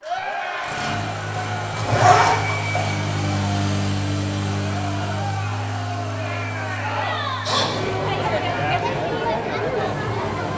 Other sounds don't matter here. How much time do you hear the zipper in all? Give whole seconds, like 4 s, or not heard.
2 s.